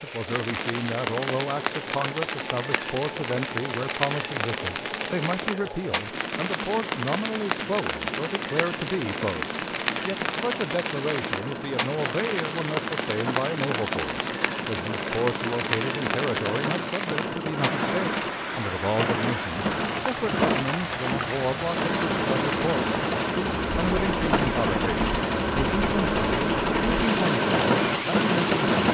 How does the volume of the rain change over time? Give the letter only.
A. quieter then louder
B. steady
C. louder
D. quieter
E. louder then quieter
B.